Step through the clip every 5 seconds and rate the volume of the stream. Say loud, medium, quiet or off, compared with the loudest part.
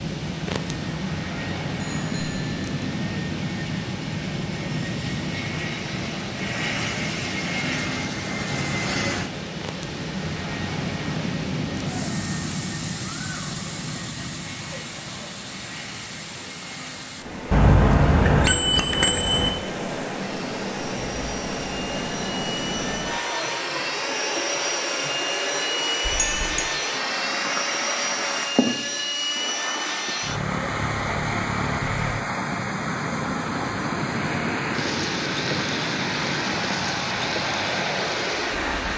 medium, medium, medium, medium, loud, loud, loud, loud.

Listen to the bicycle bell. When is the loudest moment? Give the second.
18 s.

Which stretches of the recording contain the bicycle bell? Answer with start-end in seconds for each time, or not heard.
1.8-2.6, 17.5-19.5, 26.1-26.7.